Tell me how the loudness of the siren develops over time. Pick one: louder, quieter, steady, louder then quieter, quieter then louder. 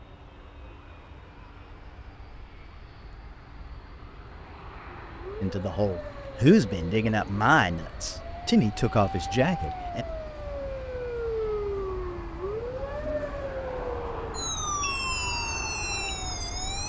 louder.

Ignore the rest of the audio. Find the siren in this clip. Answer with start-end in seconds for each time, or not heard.
5.1-16.8.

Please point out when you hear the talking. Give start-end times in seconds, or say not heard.
5.4-10.1.